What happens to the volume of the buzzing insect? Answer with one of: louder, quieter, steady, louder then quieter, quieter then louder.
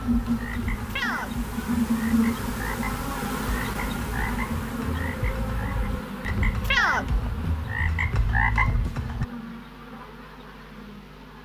quieter.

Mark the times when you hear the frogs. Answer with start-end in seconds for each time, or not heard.
0.0-9.2.